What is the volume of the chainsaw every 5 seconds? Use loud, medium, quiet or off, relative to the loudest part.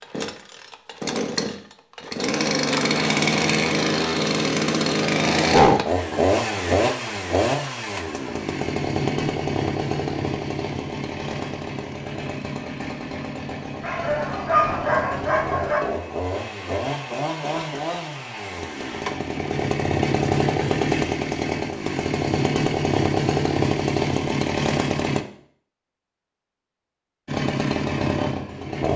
loud, loud, medium, medium, loud, loud.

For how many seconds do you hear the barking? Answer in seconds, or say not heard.
2 s.